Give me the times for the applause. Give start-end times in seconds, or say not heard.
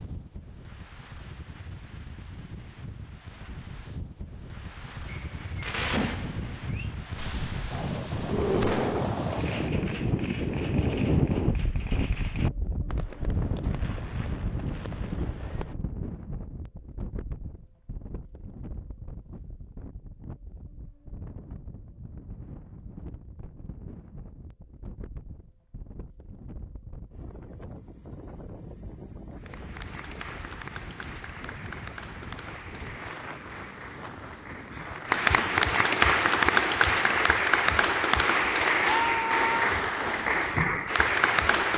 29.3-41.7.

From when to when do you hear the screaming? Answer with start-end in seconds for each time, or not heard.
8.2-9.1, 38.9-39.5.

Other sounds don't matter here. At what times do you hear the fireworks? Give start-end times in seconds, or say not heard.
5.0-15.8.